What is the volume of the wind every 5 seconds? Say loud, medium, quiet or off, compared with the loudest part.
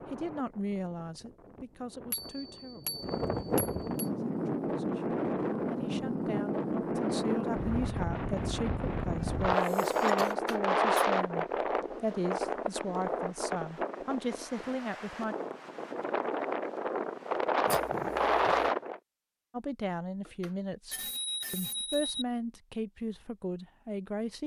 medium, loud, loud, loud, off.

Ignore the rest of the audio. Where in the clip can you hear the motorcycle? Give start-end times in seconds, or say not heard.
not heard.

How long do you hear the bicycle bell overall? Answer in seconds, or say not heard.
5 s.